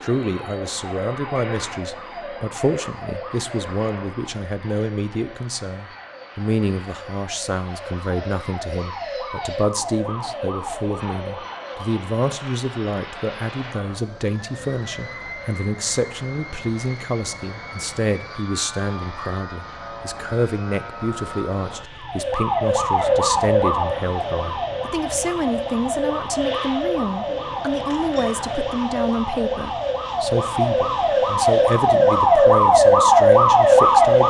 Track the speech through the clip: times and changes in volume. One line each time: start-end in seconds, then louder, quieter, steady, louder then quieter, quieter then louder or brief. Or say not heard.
0.0-34.2 steady.